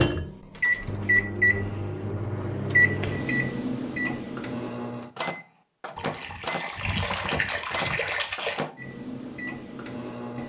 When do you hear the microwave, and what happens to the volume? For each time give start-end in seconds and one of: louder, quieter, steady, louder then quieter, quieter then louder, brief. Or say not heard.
0.0-10.4 quieter.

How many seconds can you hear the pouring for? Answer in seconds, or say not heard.
3 s.